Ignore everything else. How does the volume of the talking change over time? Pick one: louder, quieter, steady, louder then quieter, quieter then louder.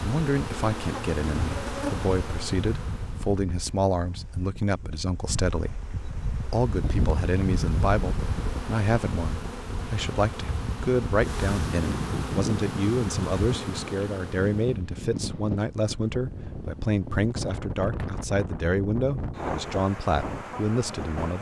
steady.